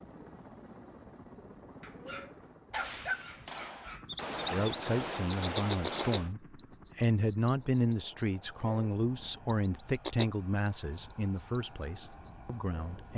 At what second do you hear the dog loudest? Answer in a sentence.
The loudest moment of the dog is at 3 seconds.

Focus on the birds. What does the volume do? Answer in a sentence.
The loudness of the birds goes down.